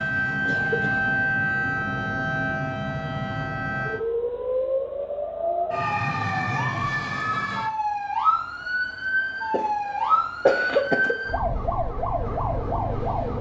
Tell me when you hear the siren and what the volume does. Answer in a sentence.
The siren can be heard from 0.0 to 13.3 s, at a steady volume.